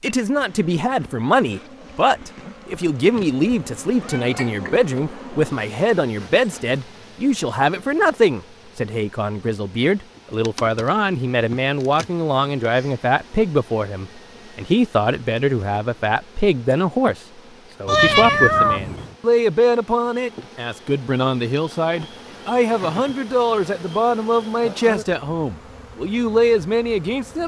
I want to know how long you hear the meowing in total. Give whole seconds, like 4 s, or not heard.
3 s.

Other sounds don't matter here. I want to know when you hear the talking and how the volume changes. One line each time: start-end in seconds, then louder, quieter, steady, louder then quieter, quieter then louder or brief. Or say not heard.
0.0-27.4 steady.